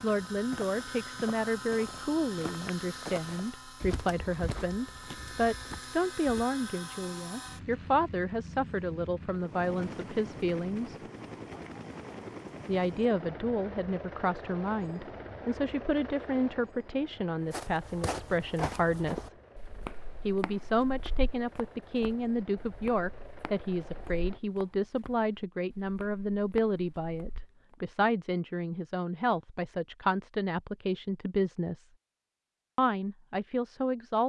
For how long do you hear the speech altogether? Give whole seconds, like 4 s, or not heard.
31 s.